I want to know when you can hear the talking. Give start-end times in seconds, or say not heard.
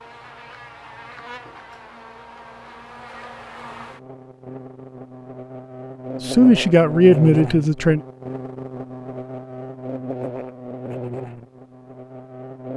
6.2-8.0.